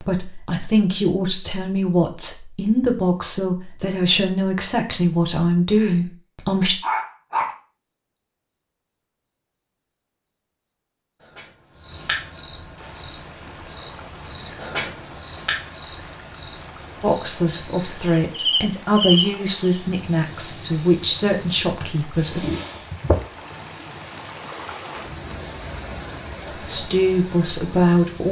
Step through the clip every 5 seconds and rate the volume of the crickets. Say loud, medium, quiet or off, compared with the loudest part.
quiet, quiet, loud, loud, loud, medium.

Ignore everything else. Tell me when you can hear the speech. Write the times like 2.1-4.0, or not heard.
0.0-6.8, 17.0-22.5, 26.4-28.2.